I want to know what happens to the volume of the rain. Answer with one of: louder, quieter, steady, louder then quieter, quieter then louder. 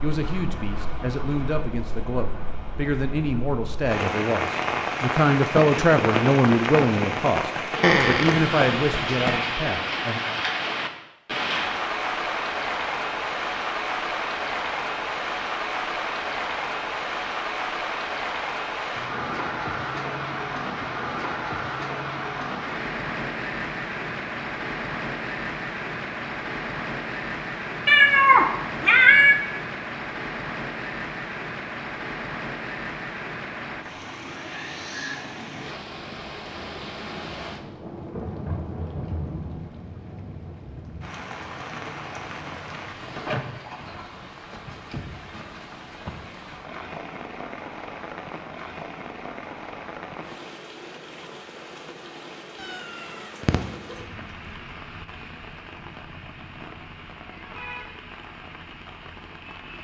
quieter.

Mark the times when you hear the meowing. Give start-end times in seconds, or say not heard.
7.8-9.4, 27.9-29.4, 52.6-54.0.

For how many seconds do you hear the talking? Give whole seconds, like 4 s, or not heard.
10 s.